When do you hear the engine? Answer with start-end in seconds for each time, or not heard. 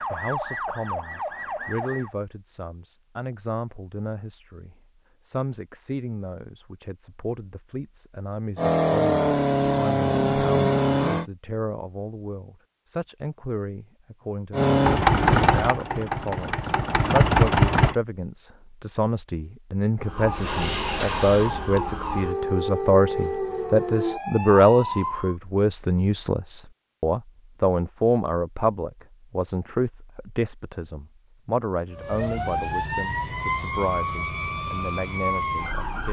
8.6-11.2, 14.5-17.9.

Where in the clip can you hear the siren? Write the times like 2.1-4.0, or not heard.
0.0-2.1, 20.0-25.4, 31.9-36.0.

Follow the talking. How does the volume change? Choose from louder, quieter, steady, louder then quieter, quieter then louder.
louder then quieter.